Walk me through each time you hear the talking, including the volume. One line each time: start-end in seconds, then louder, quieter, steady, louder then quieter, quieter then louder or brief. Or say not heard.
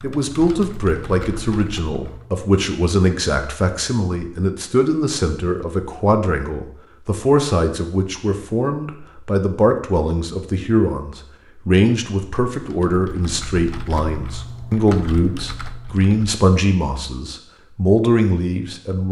0.0-19.0 steady.